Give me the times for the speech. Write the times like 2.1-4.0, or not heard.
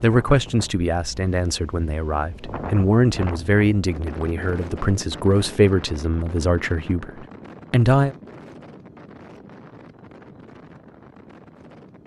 0.0-8.2.